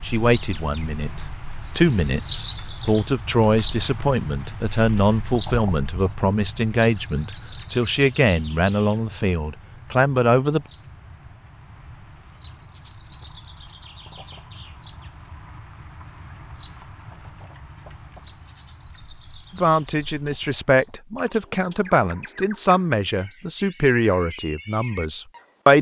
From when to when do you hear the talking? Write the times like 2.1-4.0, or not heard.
0.0-10.7, 19.6-25.7.